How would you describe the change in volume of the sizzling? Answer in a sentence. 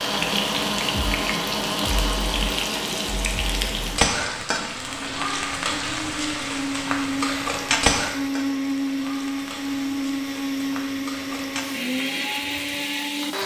The loudness of the sizzling goes down.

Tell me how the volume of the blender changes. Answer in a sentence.
The loudness of the blender goes down, then up.